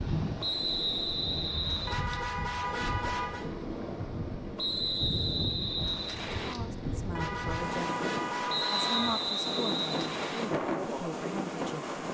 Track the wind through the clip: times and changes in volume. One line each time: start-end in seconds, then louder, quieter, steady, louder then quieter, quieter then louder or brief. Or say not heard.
0.0-12.0 louder.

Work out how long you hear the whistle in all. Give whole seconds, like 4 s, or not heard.
6 s.